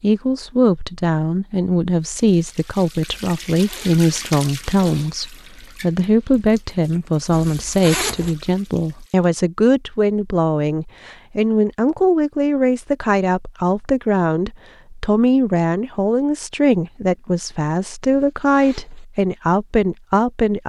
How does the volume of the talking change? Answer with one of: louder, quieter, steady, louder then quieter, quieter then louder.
steady.